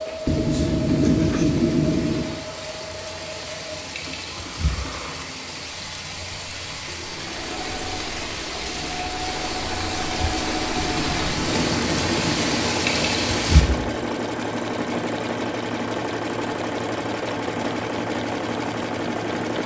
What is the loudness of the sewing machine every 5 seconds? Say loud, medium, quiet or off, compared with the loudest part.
medium, medium, loud, loud.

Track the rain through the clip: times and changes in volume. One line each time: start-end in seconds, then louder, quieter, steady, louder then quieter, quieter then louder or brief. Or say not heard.
0.0-13.7 louder.